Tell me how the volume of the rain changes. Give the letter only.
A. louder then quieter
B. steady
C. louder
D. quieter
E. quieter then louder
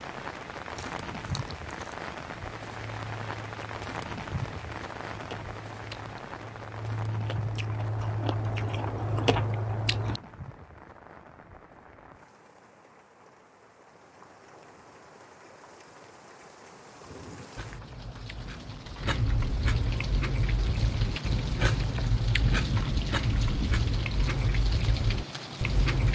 E.